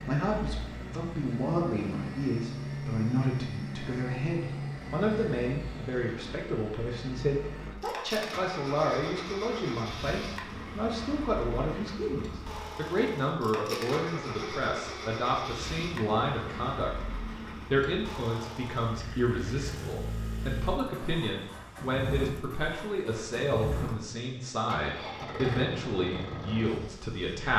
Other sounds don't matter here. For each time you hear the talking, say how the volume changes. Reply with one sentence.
The talking can be heard from 0.1 to 16.9 s, at a steady volume; and from 17.7 to 27.5 s, at a steady volume.